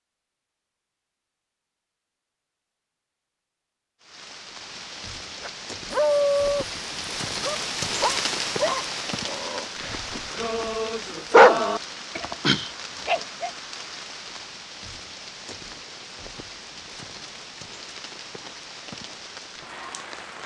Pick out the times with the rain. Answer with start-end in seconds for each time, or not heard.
4.0-20.4.